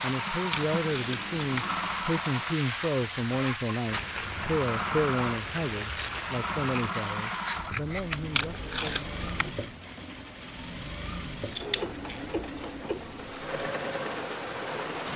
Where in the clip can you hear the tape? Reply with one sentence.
You can hear the tape from 0.5 to 1.7 s and from 8.3 to 9.5 s.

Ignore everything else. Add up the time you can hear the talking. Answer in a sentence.
The talking can be heard for 9 seconds in total.